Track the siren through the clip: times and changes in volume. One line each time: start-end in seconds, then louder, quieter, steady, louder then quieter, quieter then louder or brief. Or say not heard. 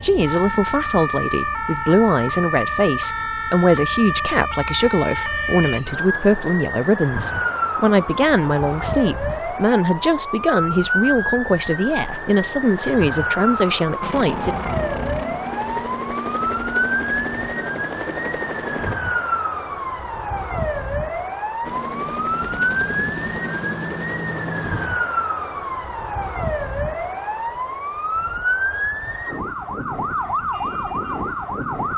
0.0-31.9 steady.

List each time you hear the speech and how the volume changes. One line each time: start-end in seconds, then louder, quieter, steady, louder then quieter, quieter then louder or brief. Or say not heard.
0.0-14.6 steady.